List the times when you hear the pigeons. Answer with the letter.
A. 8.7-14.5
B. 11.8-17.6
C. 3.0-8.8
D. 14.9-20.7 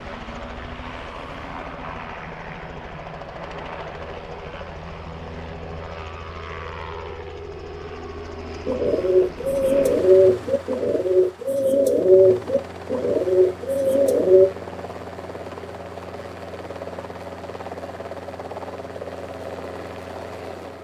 A.